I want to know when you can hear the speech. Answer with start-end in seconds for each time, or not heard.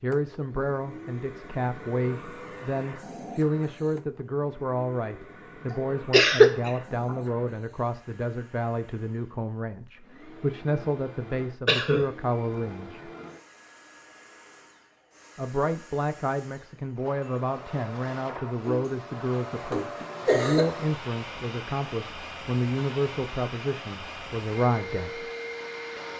0.0-13.1, 15.3-25.3.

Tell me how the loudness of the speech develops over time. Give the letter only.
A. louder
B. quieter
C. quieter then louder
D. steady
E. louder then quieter
D.